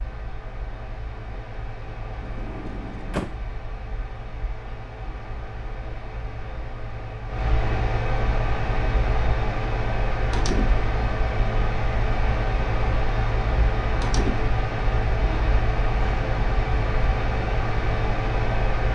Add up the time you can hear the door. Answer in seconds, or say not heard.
2 s.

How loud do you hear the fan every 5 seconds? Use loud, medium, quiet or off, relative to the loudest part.
quiet, loud, loud, loud.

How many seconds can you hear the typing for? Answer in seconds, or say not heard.
not heard.